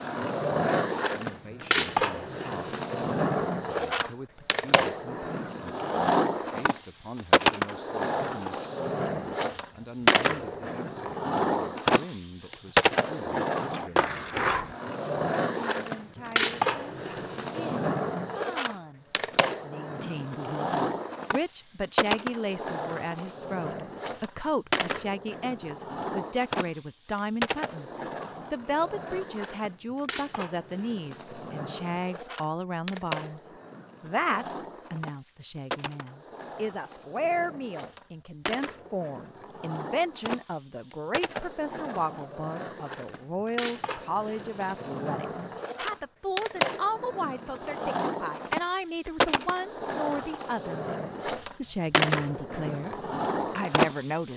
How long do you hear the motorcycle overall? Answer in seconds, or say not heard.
not heard.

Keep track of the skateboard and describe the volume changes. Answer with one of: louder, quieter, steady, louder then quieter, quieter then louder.
quieter then louder.